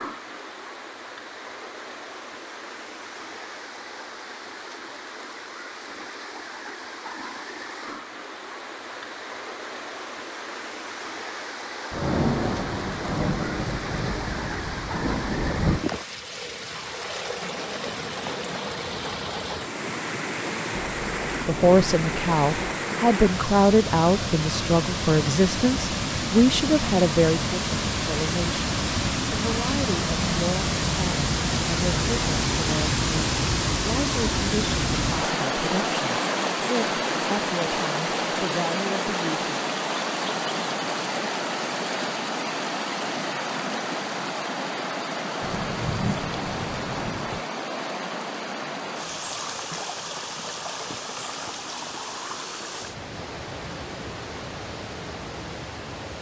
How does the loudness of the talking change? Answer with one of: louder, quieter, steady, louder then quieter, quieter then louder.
quieter.